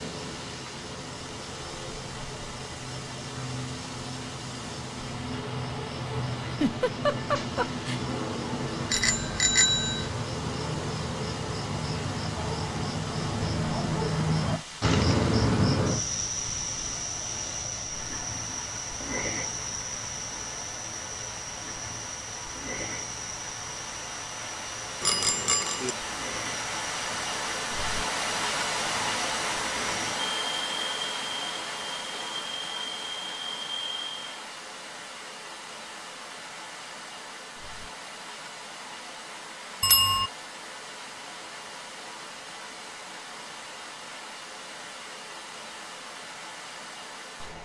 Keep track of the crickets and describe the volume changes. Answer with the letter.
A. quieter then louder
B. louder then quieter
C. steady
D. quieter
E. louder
B.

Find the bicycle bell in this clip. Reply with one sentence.
The bicycle bell can be heard from 8.9 to 10.1 s, from 25.0 to 25.9 s and from 39.8 to 40.3 s.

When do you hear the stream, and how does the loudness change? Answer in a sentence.
You can hear the stream from 0.0 to 47.6 s, getting louder then quieter.